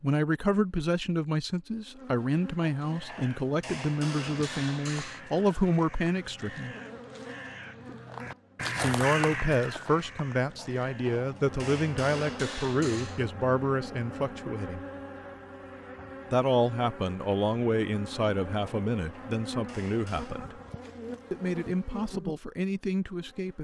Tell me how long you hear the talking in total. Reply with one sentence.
You can hear the talking for 19 seconds altogether.